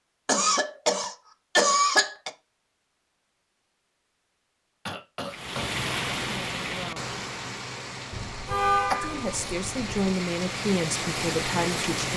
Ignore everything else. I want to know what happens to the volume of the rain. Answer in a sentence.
The volume of the rain goes down, then up.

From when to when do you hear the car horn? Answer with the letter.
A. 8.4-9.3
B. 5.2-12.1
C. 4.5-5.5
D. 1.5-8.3
A.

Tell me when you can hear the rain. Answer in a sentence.
You can hear the rain from 5.2 to 12.1 s.